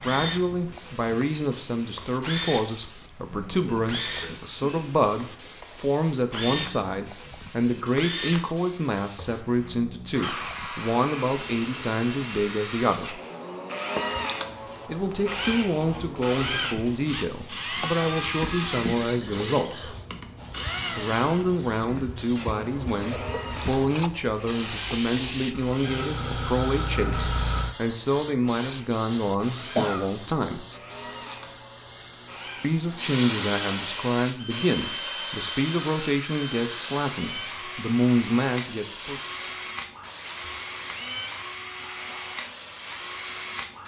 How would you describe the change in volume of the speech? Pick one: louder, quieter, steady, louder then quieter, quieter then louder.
steady.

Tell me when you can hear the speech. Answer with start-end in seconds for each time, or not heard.
0.0-13.2, 14.8-19.9, 20.9-30.6, 32.6-39.2.